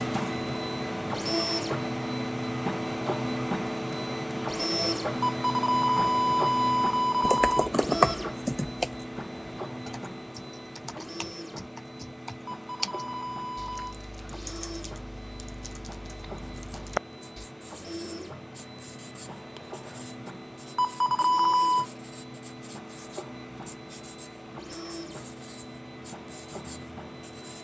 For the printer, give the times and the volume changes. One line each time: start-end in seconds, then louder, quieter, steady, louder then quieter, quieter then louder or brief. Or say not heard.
0.0-27.5 quieter.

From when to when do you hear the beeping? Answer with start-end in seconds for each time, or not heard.
5.2-7.7, 12.4-13.9, 20.8-21.9.